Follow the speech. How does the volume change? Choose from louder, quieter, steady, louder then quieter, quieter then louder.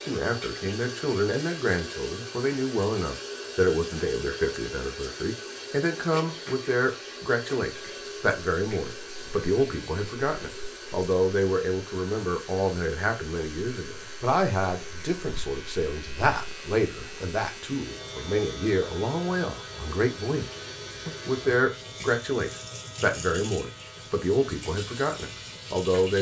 steady.